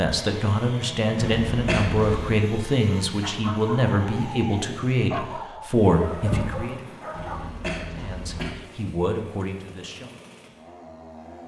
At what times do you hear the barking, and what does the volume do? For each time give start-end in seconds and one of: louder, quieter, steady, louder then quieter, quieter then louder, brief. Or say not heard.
3.2-7.5 louder then quieter.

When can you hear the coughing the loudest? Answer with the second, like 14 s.
2 s.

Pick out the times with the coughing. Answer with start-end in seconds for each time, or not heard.
1.1-2.4, 7.1-8.6.